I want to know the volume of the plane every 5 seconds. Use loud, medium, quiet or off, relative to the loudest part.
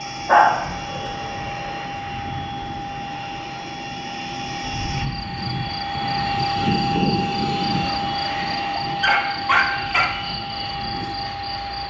medium, loud, medium.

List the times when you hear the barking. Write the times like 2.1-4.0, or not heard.
0.2-1.0, 8.3-10.1.